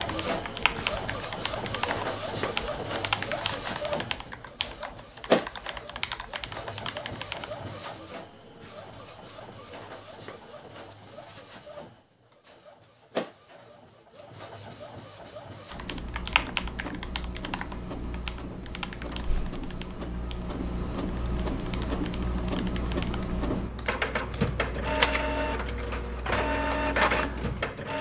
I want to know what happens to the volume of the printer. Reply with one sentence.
The volume of the printer goes down, then up.